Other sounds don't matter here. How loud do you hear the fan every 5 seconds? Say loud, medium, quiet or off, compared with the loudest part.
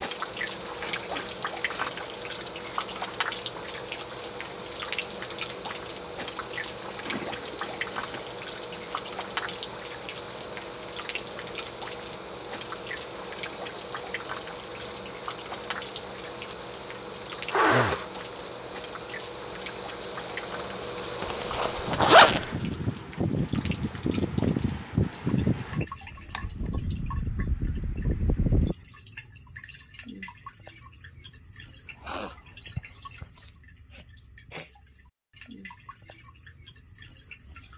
medium, medium, medium, medium, loud, loud, off, off.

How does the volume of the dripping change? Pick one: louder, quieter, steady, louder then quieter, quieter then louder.
quieter.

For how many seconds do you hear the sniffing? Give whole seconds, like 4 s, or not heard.
3 s.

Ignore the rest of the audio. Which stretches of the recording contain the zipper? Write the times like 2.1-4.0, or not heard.
7.0-8.2, 21.2-22.6.